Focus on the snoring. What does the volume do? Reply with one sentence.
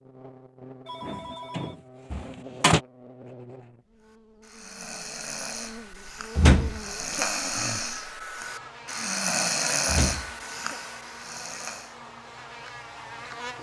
The volume of the snoring goes up, then down.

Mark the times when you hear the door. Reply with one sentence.
The door can be heard from 1.1 to 2.8 s, from 6.3 to 7.2 s and from 9.8 to 10.8 s.